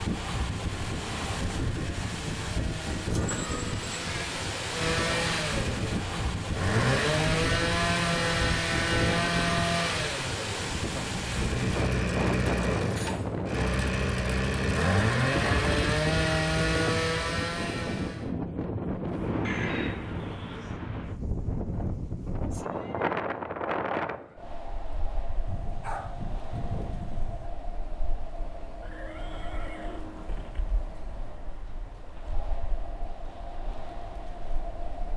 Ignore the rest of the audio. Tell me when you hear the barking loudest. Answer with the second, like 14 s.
26 s.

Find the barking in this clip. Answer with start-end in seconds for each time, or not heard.
25.4-27.5.